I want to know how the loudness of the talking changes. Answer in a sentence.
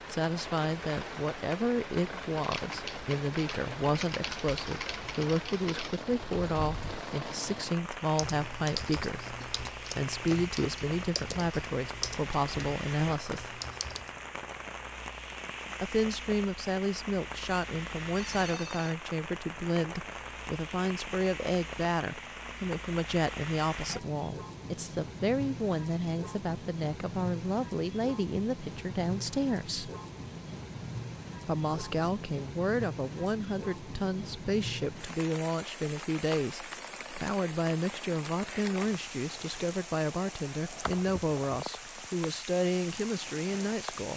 The loudness of the talking stays about the same.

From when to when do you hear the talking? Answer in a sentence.
The talking can be heard from 0.1 to 13.6 s, from 15.8 to 29.9 s and from 31.4 to 44.1 s.